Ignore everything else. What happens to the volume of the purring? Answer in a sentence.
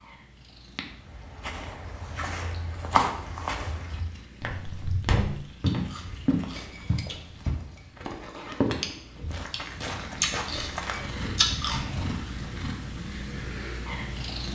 The volume of the purring goes up.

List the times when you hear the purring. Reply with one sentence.
You can hear the purring from 0.0 to 14.5 s.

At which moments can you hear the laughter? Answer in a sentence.
The laughter can't be heard in this clip.